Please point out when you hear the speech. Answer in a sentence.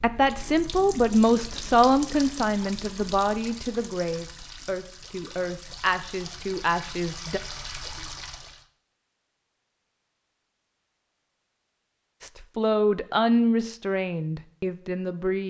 You can hear the speech from 0.0 to 7.4 s and from 12.2 to 15.4 s.